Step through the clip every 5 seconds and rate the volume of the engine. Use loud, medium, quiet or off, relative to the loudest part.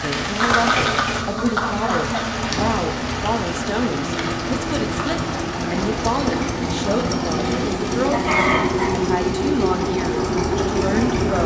medium, loud, loud.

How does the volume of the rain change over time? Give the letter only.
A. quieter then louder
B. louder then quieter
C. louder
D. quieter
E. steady
D.